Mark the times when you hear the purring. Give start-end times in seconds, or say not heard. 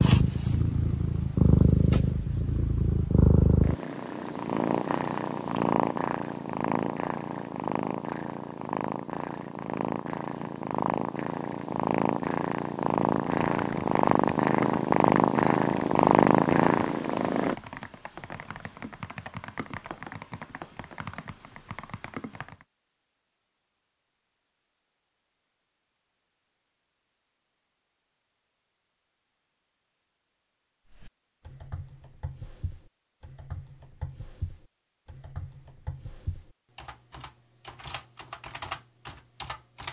0.0-17.6.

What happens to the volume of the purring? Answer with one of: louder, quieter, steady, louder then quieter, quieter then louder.
quieter then louder.